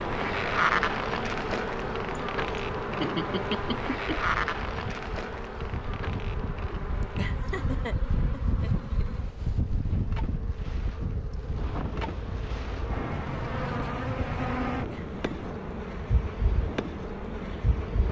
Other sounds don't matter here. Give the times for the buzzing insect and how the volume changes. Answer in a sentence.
The buzzing insect can be heard from 0.0 to 18.0 s, getting quieter then louder.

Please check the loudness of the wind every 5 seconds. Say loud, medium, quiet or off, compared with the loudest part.
medium, loud, loud, medium.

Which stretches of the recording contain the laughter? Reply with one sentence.
The laughter can be heard from 2.1 to 4.2 s, from 7.0 to 9.2 s and from 14.8 to 15.5 s.